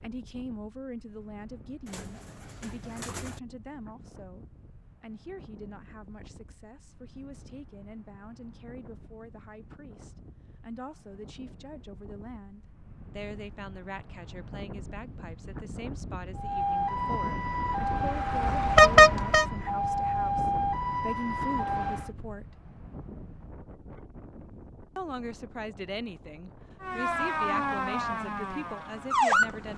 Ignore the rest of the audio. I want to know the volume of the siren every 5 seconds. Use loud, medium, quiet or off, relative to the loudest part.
off, off, off, loud, loud, loud.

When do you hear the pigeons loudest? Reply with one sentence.
The loudest moment of the pigeons is at 3 seconds.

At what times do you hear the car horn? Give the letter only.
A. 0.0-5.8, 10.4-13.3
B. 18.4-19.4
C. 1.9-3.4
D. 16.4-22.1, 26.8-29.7
B.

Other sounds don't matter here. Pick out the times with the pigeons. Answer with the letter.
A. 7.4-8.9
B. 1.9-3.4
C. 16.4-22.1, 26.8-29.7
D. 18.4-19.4
B.